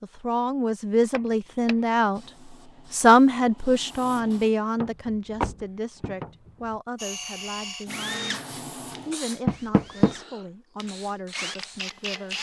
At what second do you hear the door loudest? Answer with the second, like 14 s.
10 s.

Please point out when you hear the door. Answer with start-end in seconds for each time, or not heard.
1.1-1.8, 4.8-6.8, 9.4-10.2.